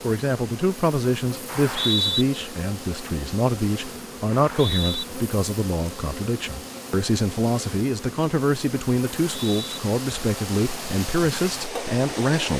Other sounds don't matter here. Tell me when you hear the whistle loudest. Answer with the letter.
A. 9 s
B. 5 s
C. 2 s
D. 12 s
C.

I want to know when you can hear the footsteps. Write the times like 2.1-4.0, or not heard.
not heard.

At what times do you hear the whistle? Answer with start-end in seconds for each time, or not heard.
1.4-2.2, 4.3-5.0, 9.3-9.8.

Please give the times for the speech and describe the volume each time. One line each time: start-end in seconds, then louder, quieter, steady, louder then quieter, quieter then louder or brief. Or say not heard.
0.0-12.5 steady.